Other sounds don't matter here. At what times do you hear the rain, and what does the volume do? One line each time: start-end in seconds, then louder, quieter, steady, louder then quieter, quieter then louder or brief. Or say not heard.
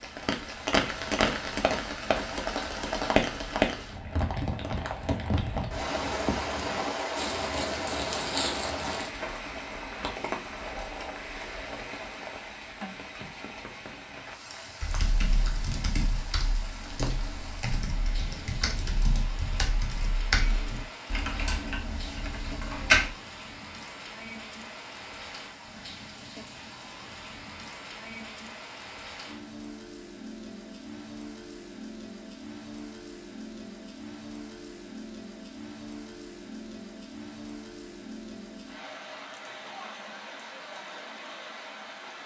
0.0-42.2 quieter.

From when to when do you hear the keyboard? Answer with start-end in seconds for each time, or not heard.
14.8-23.1.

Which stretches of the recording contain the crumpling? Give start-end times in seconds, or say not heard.
7.2-9.2.